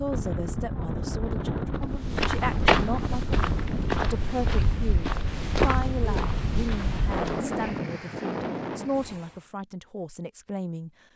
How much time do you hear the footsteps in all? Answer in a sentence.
You can hear the footsteps for 6 seconds altogether.